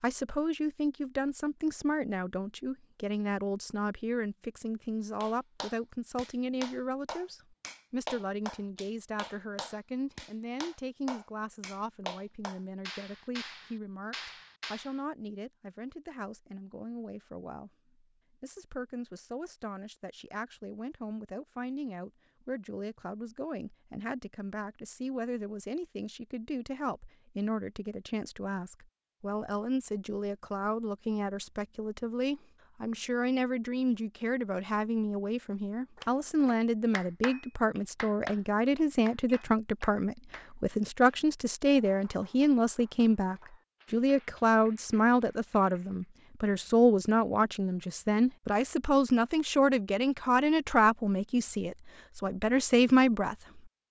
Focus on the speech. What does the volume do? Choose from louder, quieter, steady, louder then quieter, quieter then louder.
quieter then louder.